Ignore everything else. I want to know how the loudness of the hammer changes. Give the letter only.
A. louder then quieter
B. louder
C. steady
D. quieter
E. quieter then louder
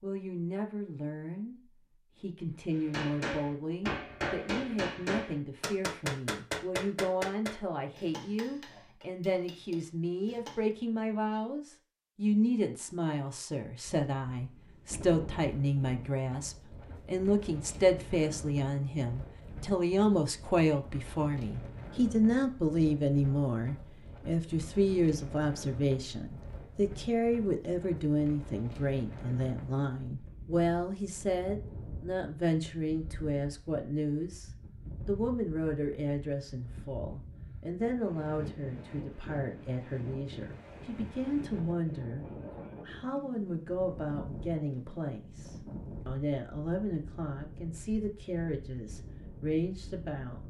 D.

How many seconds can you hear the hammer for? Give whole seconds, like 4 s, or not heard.
8 s.